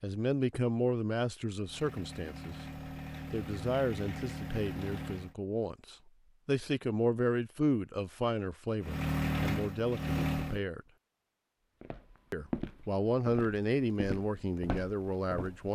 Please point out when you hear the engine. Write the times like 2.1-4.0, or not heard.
1.6-5.3, 8.8-10.6.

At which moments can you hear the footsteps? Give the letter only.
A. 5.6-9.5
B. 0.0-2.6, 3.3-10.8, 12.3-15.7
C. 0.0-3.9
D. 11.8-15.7
D.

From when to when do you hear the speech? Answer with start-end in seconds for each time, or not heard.
0.0-2.6, 3.3-10.8, 12.3-15.7.